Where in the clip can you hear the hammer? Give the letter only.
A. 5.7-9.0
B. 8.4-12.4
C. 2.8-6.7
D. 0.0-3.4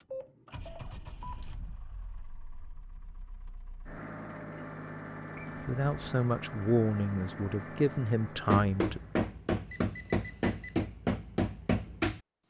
B.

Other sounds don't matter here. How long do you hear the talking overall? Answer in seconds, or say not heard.
3 s.